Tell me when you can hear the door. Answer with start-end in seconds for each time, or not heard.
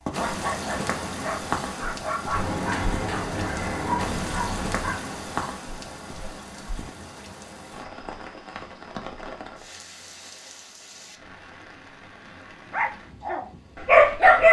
2.4-4.8.